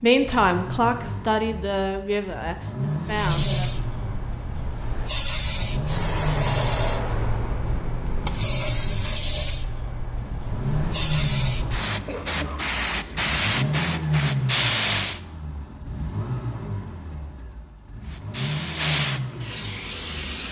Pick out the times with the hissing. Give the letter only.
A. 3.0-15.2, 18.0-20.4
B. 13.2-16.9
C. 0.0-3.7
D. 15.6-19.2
A.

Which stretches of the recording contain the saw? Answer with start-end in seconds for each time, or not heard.
not heard.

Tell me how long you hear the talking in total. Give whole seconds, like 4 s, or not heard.
4 s.